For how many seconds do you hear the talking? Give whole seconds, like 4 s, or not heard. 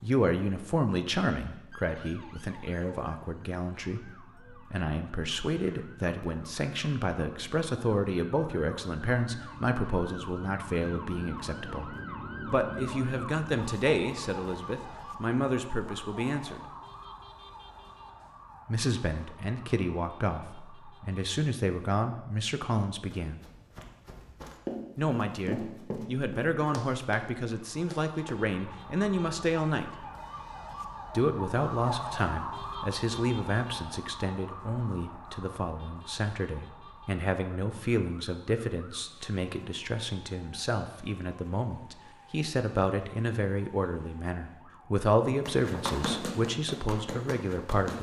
43 s.